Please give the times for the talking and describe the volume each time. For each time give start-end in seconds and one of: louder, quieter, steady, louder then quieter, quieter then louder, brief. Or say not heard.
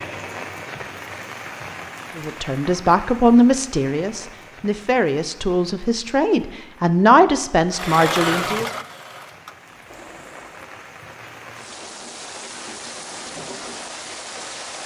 2.1-8.7 quieter then louder.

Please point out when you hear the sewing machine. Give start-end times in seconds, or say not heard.
7.7-10.8.